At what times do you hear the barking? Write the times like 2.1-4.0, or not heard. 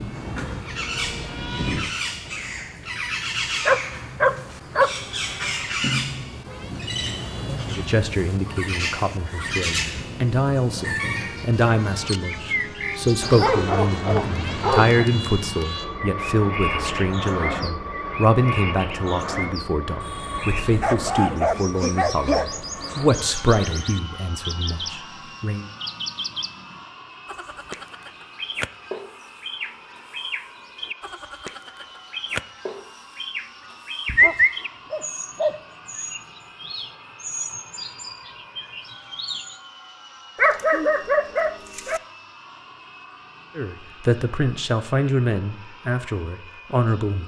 3.6-5.3, 13.2-14.9, 20.8-22.4, 34.0-35.5, 40.4-42.0.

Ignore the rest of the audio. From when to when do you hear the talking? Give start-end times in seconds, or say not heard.
7.7-25.6, 43.5-47.2.